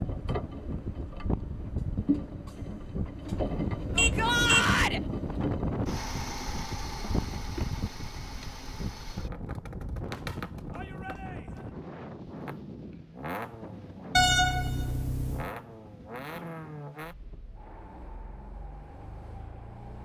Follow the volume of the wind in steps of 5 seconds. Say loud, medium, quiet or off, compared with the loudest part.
loud, loud, medium, quiet.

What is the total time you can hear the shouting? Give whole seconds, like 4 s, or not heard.
2 s.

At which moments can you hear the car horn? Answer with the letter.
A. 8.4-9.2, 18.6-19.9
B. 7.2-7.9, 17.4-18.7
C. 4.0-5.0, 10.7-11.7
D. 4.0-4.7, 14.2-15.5
D.